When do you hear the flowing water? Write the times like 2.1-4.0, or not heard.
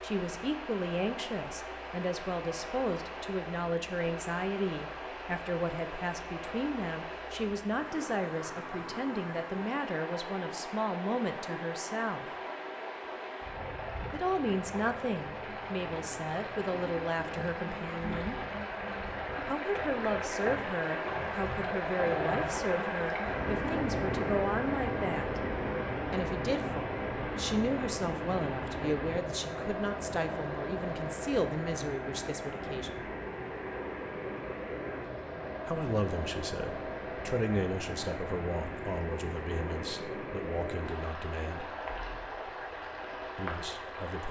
0.0-44.2.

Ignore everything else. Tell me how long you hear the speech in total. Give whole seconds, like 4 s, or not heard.
36 s.